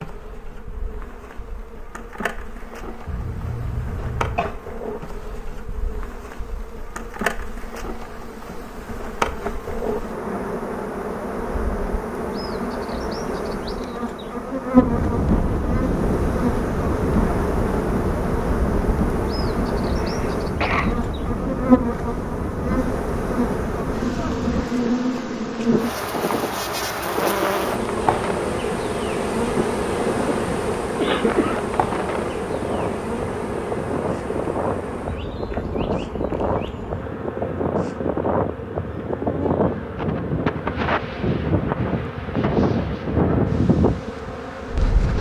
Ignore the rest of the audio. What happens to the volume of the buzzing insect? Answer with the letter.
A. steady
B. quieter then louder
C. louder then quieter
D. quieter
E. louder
C.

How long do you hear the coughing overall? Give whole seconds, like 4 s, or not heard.
4 s.